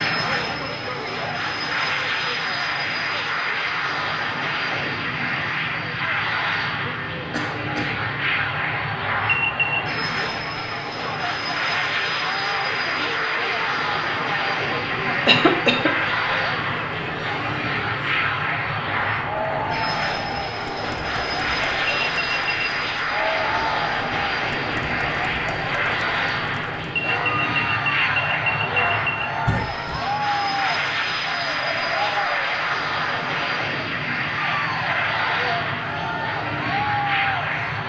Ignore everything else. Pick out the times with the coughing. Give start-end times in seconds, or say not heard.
7.3-7.9, 15.2-16.1, 29.4-30.1.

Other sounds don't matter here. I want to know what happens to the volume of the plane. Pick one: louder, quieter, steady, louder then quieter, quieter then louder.
steady.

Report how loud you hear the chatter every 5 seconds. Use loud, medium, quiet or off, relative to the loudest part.
medium, medium, loud, loud, loud, loud, loud, loud.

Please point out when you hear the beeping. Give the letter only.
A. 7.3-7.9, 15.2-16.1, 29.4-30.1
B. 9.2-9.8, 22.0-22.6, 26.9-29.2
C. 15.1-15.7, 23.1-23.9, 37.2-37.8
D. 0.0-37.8
B.